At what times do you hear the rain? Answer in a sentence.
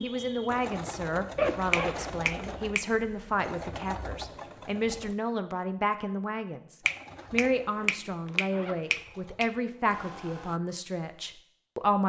The rain can't be heard in this clip.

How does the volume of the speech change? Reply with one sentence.
The volume of the speech stays about the same.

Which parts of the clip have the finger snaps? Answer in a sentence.
The finger snaps can be heard from 1.7 to 2.9 s and from 6.8 to 9.5 s.